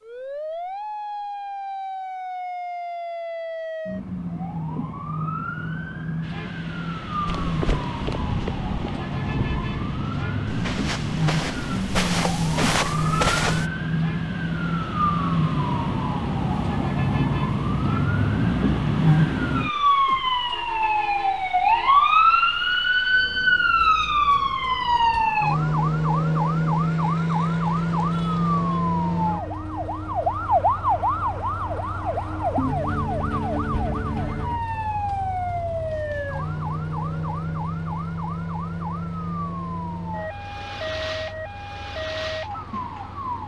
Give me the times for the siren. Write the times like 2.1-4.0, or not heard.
0.0-43.4.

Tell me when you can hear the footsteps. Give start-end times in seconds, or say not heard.
7.2-13.7.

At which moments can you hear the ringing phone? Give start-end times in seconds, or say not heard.
not heard.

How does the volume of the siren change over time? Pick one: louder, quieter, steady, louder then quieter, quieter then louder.
louder then quieter.